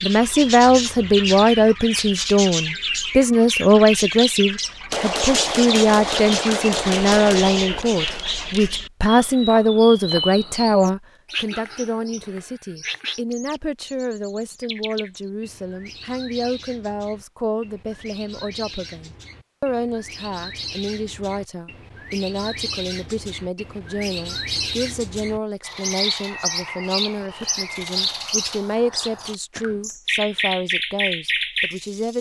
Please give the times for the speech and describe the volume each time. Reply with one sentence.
You can hear the speech from 0.0 to 32.1 s, getting quieter.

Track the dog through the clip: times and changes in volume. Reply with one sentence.
You can't hear the dog here.